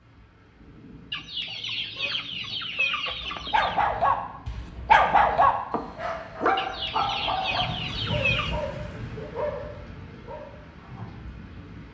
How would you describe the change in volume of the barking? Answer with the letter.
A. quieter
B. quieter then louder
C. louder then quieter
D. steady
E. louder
A.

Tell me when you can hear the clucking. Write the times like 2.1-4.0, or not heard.
1.1-3.8, 6.5-8.6.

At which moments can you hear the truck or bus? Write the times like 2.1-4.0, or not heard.
not heard.